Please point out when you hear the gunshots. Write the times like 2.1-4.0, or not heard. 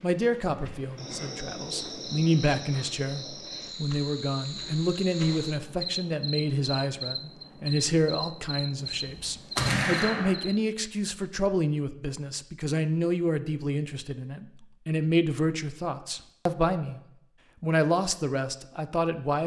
9.1-10.3.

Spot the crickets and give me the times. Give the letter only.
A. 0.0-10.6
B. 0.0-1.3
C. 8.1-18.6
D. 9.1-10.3
A.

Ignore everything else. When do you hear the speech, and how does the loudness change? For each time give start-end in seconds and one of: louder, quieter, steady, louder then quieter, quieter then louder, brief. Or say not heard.
0.0-17.0 steady
17.6-19.4 brief.